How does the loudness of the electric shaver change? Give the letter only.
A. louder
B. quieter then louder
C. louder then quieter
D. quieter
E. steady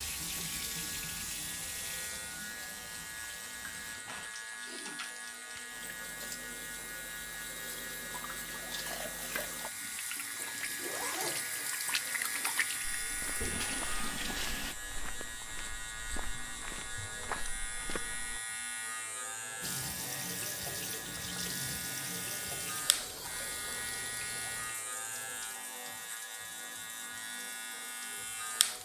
E.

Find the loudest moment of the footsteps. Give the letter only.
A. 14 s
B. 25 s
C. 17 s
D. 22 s
C.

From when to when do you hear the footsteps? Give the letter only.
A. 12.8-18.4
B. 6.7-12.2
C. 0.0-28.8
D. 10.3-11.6
A.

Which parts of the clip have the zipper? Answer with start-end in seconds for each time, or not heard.
10.3-11.6.